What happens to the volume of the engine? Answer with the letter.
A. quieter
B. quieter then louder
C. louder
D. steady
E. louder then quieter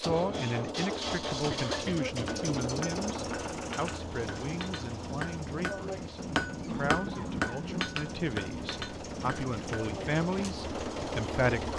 B.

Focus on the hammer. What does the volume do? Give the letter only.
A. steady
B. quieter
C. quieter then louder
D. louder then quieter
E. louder
D.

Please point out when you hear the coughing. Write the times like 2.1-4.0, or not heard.
1.5-2.4, 6.7-7.9.